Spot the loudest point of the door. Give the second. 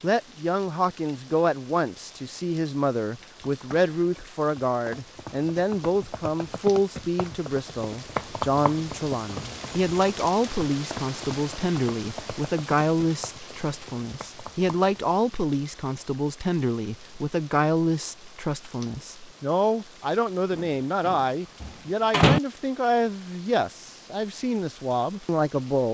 22 s.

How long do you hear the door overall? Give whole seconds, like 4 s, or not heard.
2 s.